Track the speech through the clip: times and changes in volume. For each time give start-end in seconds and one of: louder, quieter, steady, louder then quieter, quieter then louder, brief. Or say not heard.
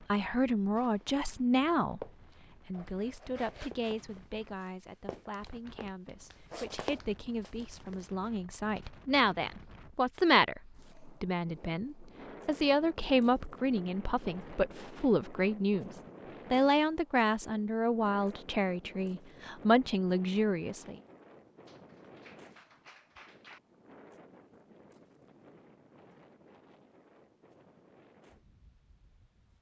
0.1-21.0 quieter then louder.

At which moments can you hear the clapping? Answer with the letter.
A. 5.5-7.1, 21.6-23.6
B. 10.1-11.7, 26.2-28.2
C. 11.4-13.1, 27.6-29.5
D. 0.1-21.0
A.